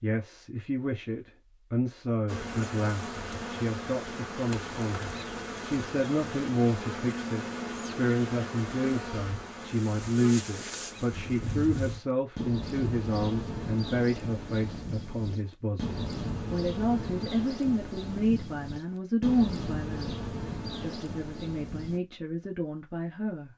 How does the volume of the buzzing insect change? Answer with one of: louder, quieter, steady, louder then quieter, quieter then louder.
steady.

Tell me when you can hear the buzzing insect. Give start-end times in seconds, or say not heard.
2.2-22.0.